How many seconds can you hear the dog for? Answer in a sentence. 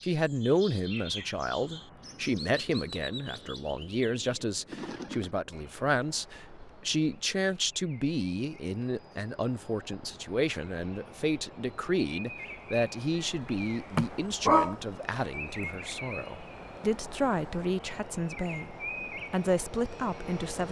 You can hear the dog for 2 seconds altogether.